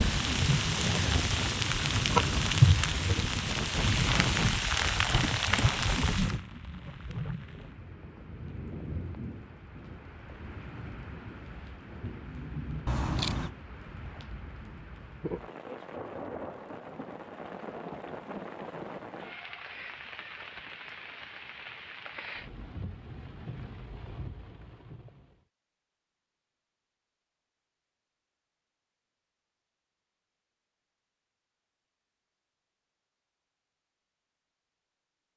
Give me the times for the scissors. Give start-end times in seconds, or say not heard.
12.8-13.5.